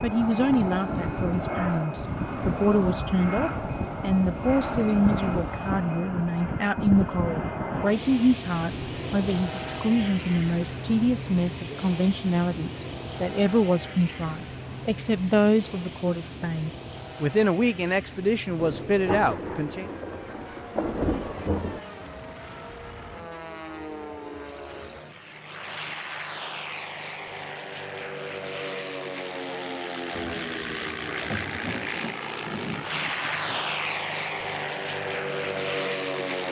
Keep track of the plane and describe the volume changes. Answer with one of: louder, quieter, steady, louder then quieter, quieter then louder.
quieter then louder.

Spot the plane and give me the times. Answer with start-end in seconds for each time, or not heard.
0.0-36.4.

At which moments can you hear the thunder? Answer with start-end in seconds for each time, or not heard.
2.0-5.7, 18.6-21.8, 30.1-33.6.